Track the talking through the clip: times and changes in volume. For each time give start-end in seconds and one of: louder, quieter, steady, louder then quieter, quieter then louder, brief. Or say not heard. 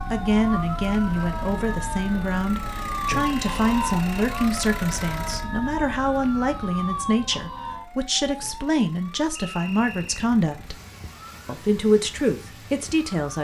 0.1-10.8 steady
11.4-13.4 brief.